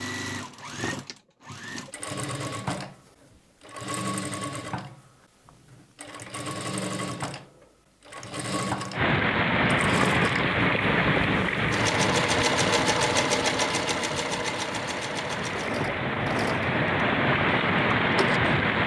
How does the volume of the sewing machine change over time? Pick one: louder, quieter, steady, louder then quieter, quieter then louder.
louder then quieter.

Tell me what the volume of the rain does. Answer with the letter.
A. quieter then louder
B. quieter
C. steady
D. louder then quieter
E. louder
A.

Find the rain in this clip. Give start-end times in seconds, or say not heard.
8.9-18.8.